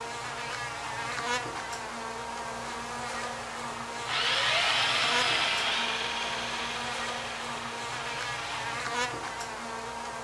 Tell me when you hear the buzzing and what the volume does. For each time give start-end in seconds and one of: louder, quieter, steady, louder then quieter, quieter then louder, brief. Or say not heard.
0.0-10.2 steady.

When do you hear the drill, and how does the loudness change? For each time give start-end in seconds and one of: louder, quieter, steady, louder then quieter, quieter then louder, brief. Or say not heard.
4.0-8.8 quieter.